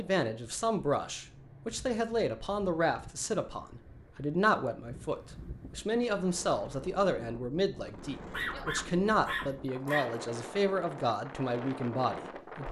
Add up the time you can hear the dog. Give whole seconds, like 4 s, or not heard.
2 s.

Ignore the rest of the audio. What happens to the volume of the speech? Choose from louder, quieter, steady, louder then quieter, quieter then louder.
steady.